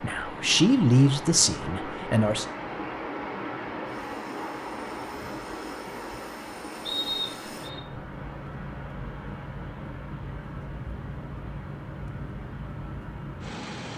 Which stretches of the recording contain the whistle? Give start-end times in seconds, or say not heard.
6.8-7.8.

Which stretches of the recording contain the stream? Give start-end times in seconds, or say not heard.
0.0-13.9.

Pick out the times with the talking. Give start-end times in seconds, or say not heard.
0.0-2.5.